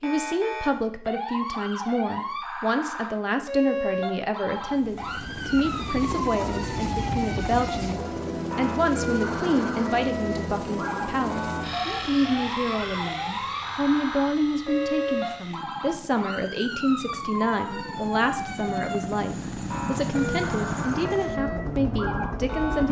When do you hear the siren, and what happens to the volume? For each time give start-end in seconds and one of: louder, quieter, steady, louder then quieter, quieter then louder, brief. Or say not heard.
0.0-22.8 steady.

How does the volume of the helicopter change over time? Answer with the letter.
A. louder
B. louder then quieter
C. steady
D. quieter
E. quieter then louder
E.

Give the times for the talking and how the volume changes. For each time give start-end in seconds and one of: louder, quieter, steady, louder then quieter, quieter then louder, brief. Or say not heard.
0.0-22.8 steady.